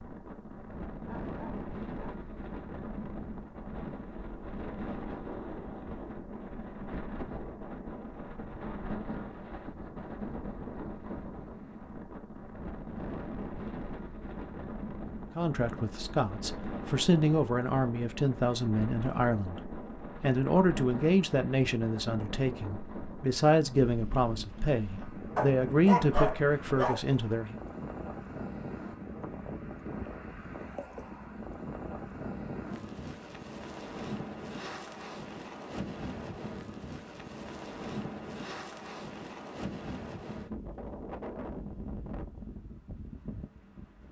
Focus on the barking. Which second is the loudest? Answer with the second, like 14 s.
26 s.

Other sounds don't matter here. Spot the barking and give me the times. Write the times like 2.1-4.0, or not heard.
1.1-2.2, 25.4-27.0.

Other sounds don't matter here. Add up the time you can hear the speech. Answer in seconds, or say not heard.
12 s.